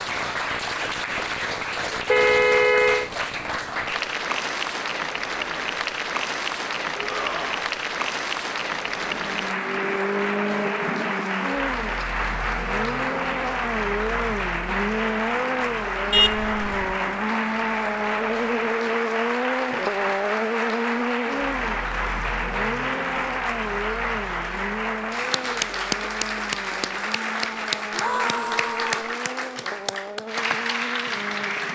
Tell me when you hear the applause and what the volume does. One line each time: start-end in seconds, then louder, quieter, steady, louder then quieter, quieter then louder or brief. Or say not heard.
0.0-31.7 steady.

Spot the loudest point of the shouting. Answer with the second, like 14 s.
28 s.